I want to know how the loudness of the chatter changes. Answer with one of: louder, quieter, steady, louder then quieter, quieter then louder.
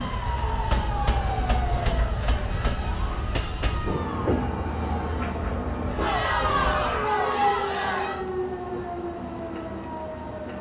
louder.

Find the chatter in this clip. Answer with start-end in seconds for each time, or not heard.
0.1-8.2.